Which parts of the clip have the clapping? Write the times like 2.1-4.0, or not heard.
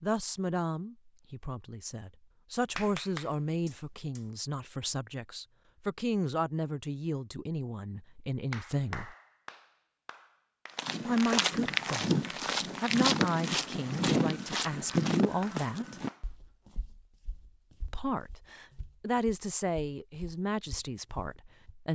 2.6-4.2, 8.5-10.8, 15.4-16.3.